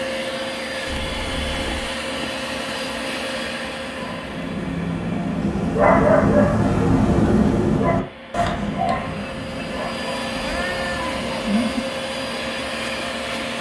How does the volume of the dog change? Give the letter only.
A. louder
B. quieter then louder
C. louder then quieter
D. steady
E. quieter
C.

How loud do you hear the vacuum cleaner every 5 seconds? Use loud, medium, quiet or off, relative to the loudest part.
loud, medium, loud.